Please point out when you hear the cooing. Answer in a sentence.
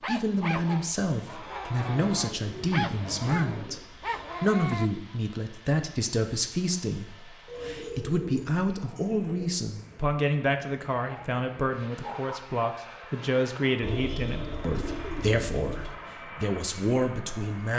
The cooing can be heard from 1.8 to 3.8 s, from 7.5 to 9.4 s and from 13.8 to 15.9 s.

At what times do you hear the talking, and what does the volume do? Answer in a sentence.
The talking can be heard from 0.1 to 17.7 s, at a steady volume.